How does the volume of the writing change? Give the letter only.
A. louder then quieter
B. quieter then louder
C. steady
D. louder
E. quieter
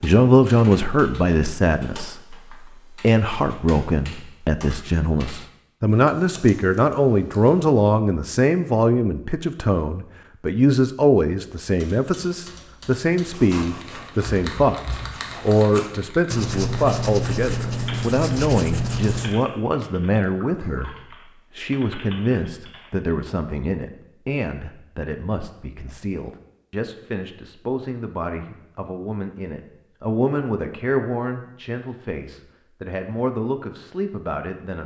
D.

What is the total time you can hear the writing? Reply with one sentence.
The writing can be heard for 6 seconds in total.